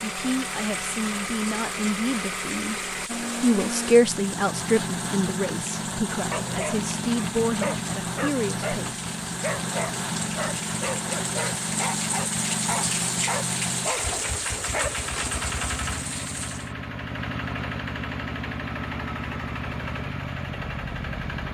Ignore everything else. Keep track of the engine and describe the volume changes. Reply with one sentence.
The loudness of the engine stays about the same.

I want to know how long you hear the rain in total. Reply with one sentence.
The rain can be heard for 17 seconds in total.